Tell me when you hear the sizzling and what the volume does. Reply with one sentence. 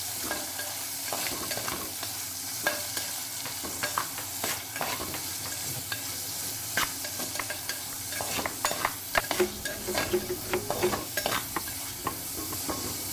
You can hear the sizzling from 0.0 to 13.0 s, at a steady volume.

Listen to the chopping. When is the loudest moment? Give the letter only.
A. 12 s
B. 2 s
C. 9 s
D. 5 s
C.